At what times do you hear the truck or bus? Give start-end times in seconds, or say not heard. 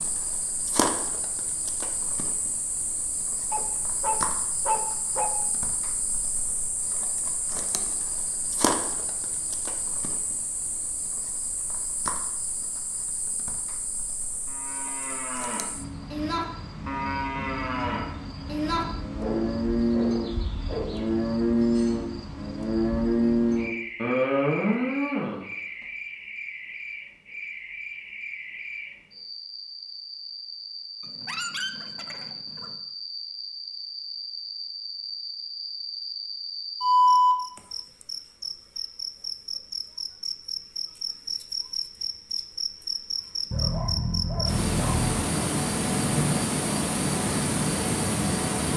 not heard.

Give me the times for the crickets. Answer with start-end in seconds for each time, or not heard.
0.0-48.7.